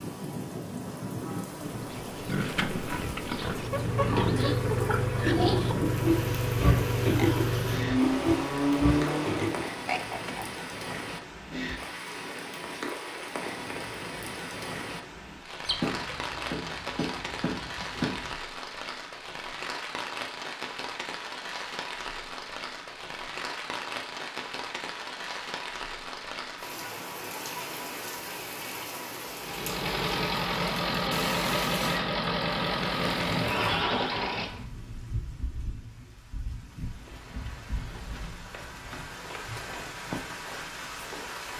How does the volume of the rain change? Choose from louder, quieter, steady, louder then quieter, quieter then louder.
steady.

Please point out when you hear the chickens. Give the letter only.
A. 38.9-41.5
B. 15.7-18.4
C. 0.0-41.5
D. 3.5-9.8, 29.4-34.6
B.